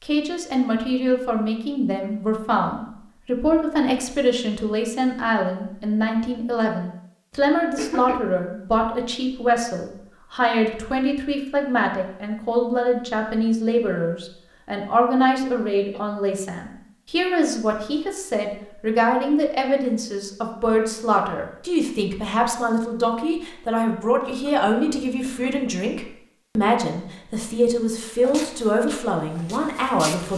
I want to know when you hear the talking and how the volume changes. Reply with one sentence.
You can hear the talking from 0.0 to 30.3 s, at a steady volume.